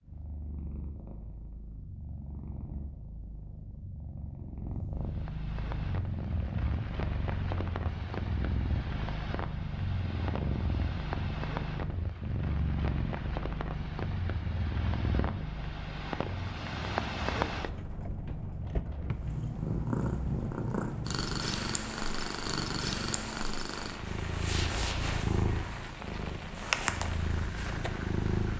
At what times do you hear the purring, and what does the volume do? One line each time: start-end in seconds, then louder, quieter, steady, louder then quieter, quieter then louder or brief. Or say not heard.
0.0-28.5 louder.